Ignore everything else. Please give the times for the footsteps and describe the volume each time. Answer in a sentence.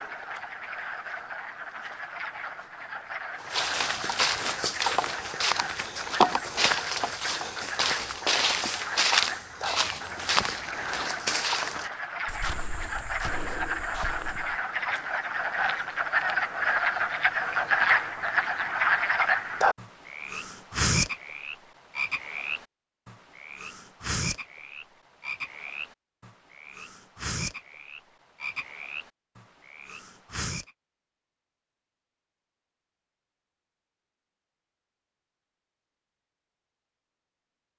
You can hear the footsteps from 3.4 to 14.6 s, getting quieter.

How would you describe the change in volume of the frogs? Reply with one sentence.
The volume of the frogs goes up, then down.